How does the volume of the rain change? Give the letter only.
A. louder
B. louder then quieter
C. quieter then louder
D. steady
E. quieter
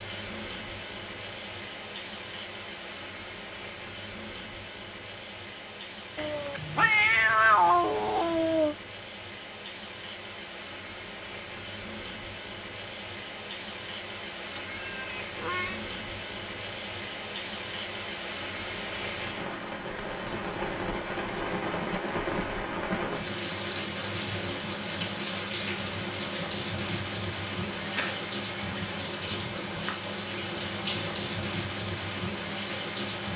A.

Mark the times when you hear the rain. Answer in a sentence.
You can hear the rain from 0.0 to 33.3 s.